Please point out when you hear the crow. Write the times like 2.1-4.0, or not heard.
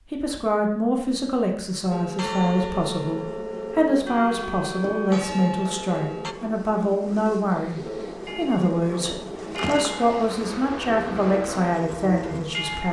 not heard.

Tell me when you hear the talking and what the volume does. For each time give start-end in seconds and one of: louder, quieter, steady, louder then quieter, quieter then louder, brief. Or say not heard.
0.1-12.8 steady.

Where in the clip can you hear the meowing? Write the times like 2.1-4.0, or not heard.
not heard.